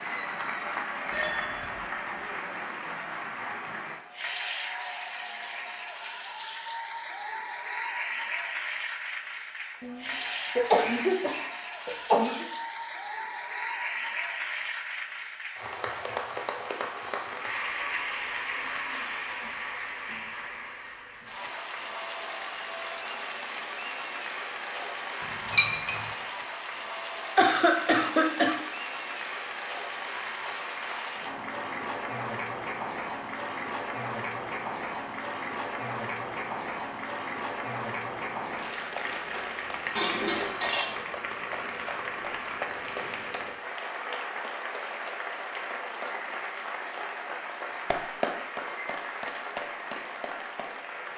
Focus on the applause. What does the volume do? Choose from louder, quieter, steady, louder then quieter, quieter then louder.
steady.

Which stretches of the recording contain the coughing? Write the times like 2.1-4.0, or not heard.
9.8-12.4, 27.4-28.6.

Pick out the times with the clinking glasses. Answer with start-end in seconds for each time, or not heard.
1.1-2.0, 25.4-26.0, 40.0-41.0.